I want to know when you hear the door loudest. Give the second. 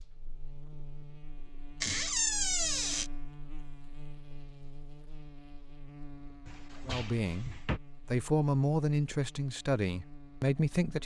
2 s.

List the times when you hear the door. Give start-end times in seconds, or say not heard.
1.8-3.1, 6.5-7.8.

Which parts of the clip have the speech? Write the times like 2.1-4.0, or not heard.
6.8-11.0.